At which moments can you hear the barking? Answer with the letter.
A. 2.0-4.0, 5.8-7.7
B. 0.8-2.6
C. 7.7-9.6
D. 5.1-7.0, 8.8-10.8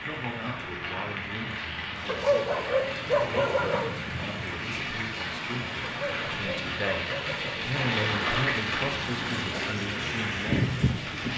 A.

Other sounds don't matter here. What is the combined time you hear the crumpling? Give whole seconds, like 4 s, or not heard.
2 s.